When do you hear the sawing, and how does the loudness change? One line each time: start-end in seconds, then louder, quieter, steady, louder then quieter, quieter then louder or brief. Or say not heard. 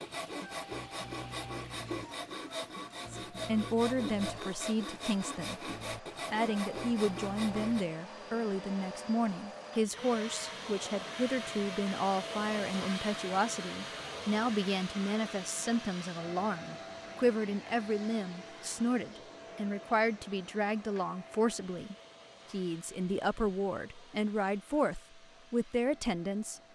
0.0-7.8 steady.